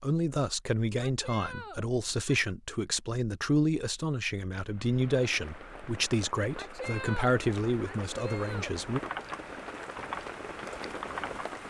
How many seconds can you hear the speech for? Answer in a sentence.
The speech can be heard for 9 seconds in total.